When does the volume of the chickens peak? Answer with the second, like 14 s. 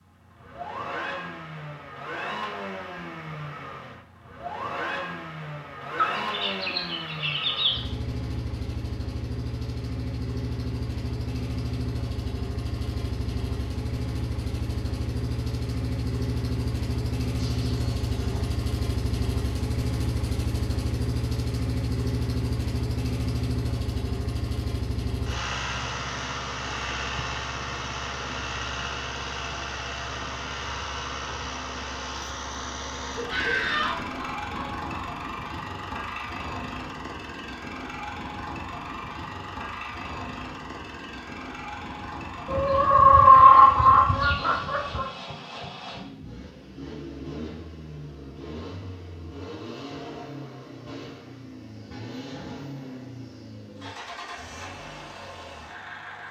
43 s.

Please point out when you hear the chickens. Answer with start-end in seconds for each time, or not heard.
6.0-7.8, 17.4-18.6, 33.1-35.0, 42.5-45.0.